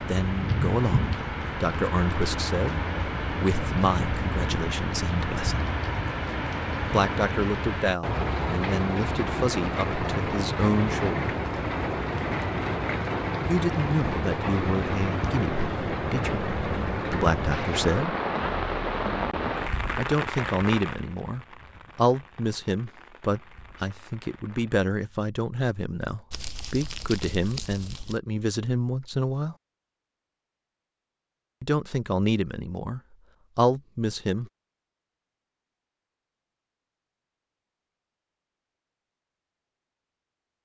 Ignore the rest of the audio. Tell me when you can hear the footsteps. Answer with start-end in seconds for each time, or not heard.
not heard.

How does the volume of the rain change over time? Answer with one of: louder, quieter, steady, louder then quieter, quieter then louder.
quieter.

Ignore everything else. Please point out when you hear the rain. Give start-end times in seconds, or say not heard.
0.0-24.9.